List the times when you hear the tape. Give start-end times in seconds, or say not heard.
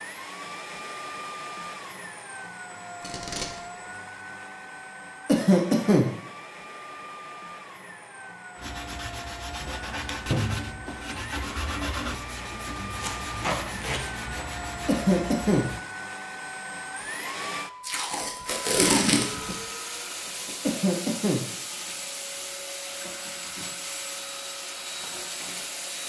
3.0-3.6, 13.0-14.4, 17.8-19.6.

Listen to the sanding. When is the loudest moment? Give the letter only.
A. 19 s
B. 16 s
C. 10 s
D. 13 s
C.